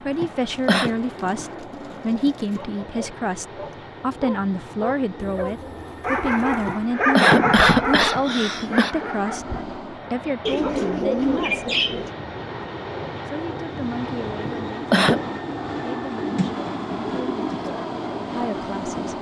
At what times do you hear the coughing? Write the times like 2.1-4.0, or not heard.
0.2-0.9, 6.7-8.9, 14.4-15.2.